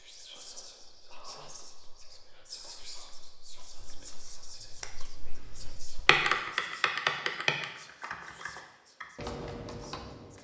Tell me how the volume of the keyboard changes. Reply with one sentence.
The loudness of the keyboard goes up, then down.